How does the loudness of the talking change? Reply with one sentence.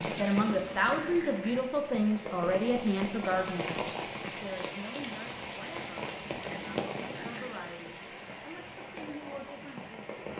The volume of the talking goes down.